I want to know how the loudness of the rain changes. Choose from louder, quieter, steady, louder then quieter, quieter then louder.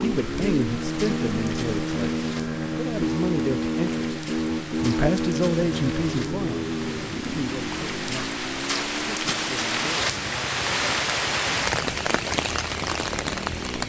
louder.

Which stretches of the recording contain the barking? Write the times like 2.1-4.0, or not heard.
not heard.